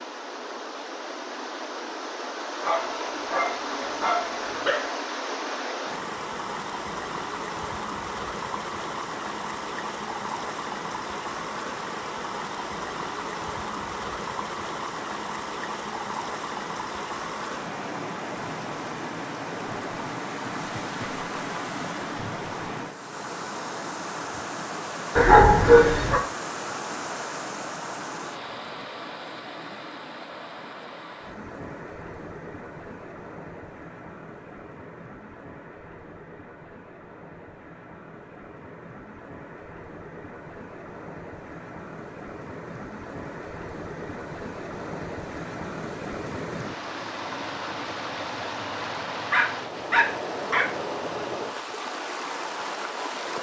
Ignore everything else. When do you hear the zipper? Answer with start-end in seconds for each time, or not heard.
not heard.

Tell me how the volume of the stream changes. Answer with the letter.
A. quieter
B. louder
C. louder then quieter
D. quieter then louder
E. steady
D.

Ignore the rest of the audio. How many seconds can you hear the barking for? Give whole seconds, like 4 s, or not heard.
5 s.